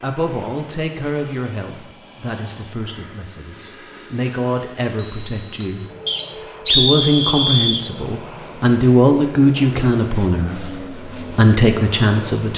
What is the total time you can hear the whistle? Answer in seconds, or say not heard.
2 s.